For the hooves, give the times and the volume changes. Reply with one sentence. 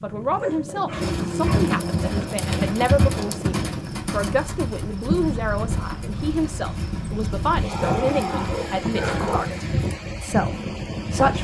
The hooves can be heard from 0.9 to 9.9 s, getting quieter.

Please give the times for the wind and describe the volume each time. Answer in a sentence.
The wind can be heard from 0.0 to 11.3 s, getting louder.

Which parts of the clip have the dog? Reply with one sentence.
The dog can be heard from 0.3 to 1.6 s and from 7.7 to 9.6 s.